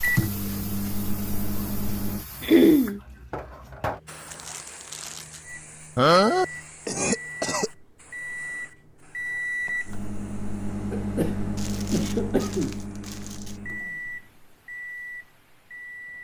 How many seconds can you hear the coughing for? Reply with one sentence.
The coughing can be heard for 4 seconds in total.